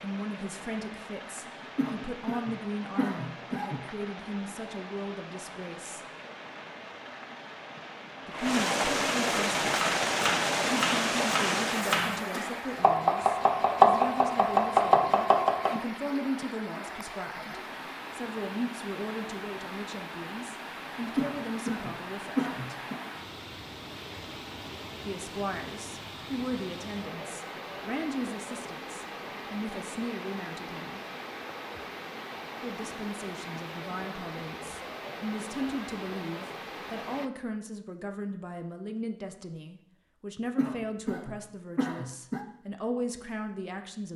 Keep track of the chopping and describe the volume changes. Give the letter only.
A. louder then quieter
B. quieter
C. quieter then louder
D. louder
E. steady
D.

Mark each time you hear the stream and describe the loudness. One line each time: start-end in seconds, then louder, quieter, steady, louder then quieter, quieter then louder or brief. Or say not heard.
0.0-37.3 louder then quieter.